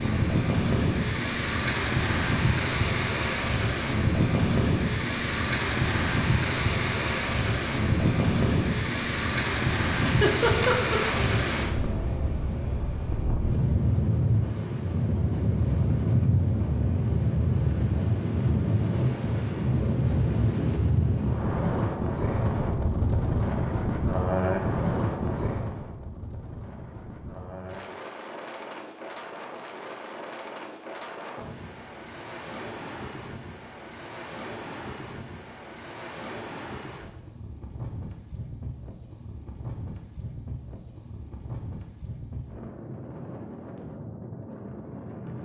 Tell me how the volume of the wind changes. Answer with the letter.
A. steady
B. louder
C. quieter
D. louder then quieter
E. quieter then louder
C.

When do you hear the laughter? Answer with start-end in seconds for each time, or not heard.
9.8-11.2.